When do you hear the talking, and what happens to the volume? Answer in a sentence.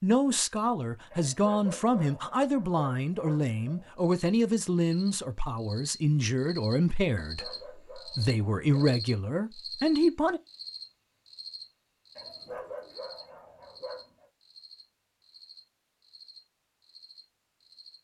You can hear the talking from 0.0 to 10.4 s, at a steady volume.